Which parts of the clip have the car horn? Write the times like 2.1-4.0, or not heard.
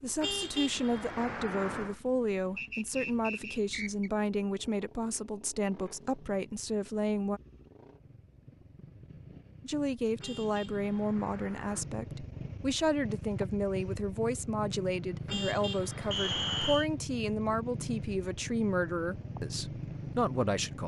0.2-1.9, 10.2-11.8, 15.2-16.8.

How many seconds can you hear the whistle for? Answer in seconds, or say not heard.
2 s.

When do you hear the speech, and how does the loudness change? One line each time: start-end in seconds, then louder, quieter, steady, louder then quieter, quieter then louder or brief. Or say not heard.
0.0-7.4 steady
9.6-20.8 steady.